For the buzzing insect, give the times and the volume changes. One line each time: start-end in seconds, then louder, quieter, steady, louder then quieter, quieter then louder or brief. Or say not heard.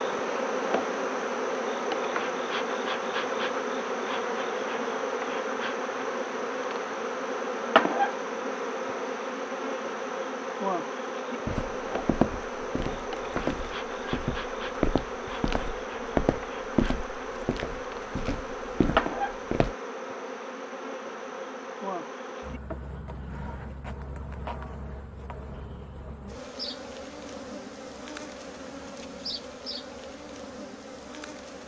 0.0-31.6 quieter.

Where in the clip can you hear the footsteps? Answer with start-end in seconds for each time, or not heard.
11.4-19.8.